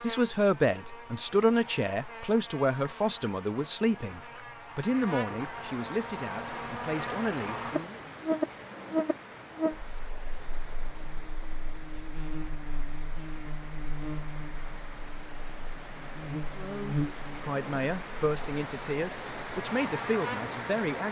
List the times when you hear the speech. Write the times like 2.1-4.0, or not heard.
0.0-8.0, 16.6-21.0.